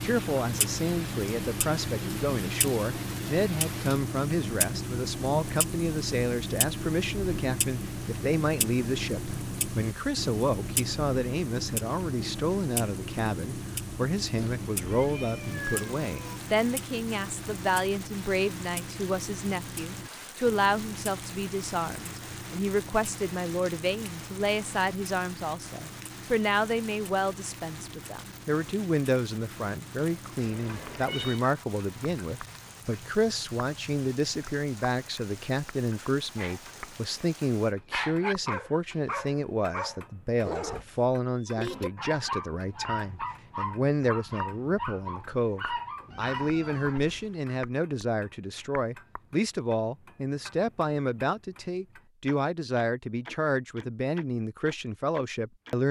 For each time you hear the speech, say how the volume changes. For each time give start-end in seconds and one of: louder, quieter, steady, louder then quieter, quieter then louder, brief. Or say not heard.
0.0-55.8 steady.